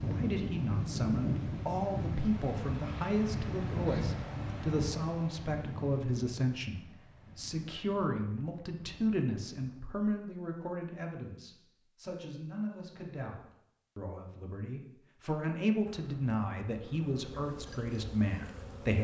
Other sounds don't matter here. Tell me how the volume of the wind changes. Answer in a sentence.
The loudness of the wind goes down.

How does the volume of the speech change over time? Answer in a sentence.
The loudness of the speech goes down, then up.